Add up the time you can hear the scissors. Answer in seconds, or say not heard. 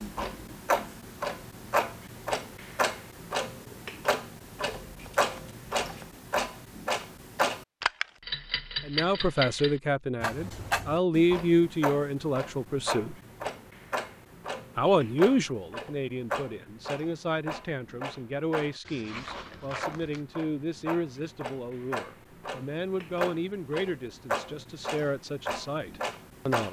3 s.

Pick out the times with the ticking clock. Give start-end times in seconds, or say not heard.
0.0-26.6.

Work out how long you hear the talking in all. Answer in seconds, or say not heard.
16 s.